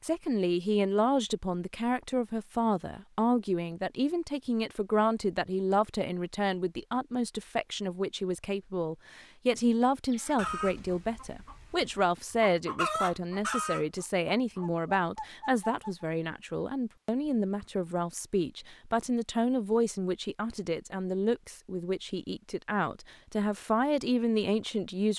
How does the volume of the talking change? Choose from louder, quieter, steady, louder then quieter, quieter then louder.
steady.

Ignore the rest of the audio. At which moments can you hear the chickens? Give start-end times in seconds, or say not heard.
10.1-16.1.